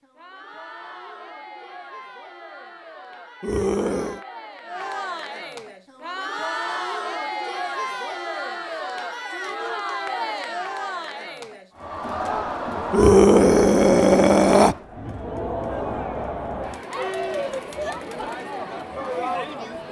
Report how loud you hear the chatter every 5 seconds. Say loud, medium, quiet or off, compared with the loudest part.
medium, loud, loud, loud.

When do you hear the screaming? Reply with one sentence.
You can hear the screaming from 3.4 to 4.2 s and from 12.9 to 14.8 s.